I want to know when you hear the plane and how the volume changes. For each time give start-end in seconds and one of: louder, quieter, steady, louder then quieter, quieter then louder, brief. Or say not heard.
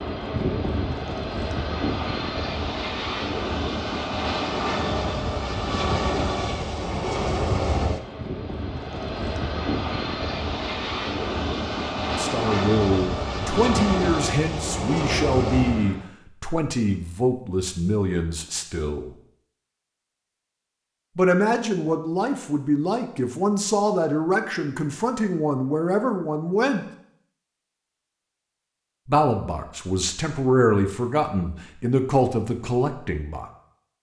0.0-16.1 steady.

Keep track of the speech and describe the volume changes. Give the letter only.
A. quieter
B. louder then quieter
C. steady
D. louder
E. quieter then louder
C.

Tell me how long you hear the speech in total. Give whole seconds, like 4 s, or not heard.
17 s.